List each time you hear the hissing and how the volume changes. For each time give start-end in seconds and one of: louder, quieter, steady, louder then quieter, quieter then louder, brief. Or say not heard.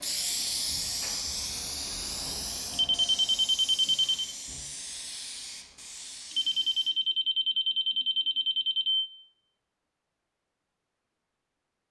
0.0-6.9 quieter.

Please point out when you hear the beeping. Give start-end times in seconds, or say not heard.
2.7-4.2, 6.3-9.1.